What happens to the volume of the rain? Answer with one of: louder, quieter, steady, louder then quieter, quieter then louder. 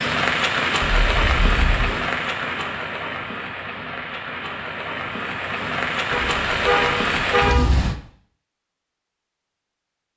quieter then louder.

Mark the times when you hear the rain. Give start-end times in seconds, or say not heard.
0.0-8.0.